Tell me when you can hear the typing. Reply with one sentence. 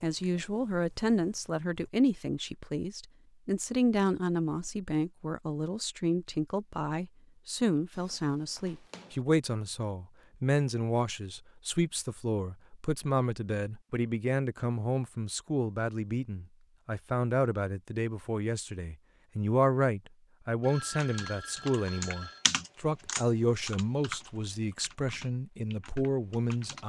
You can hear the typing from 0.0 to 1.9 s and from 20.9 to 26.8 s.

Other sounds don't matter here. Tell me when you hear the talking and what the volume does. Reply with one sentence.
You can hear the talking from 0.0 to 26.8 s, at a steady volume.